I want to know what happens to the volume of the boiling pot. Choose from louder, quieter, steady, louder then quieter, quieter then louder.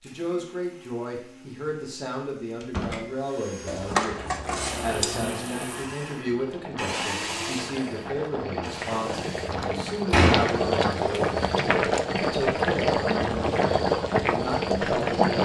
louder.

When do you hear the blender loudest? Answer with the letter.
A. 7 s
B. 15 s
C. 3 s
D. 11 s
A.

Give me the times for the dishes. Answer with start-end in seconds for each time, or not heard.
3.6-5.2.